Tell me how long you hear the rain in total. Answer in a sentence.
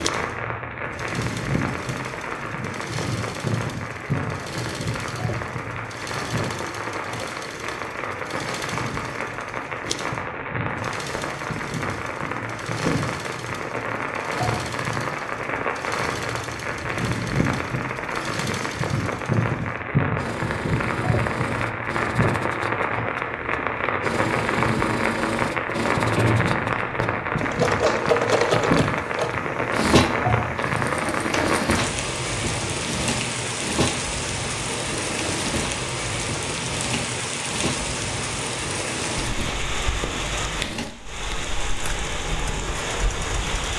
You can hear the rain for 44 seconds altogether.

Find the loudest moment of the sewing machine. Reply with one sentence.
The volume of the sewing machine peaks at 28 seconds.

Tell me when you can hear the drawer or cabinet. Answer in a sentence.
The drawer or cabinet can be heard from 25.9 to 27.1 s.